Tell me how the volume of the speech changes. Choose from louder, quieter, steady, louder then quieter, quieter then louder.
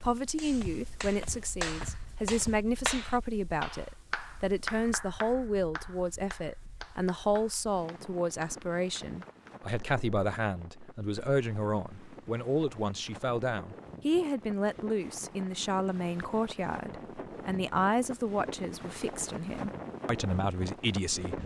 steady.